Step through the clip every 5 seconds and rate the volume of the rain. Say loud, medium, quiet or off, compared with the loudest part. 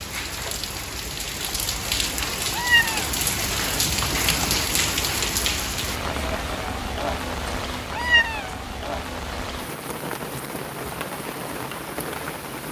loud, loud, medium.